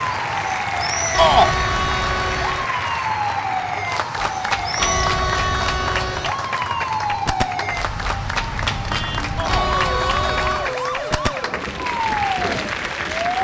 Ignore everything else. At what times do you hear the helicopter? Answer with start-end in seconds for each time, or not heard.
not heard.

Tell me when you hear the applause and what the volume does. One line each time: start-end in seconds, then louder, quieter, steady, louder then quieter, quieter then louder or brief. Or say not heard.
0.0-13.3 steady.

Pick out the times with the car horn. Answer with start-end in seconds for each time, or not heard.
1.1-2.6, 4.8-6.3, 9.4-10.8.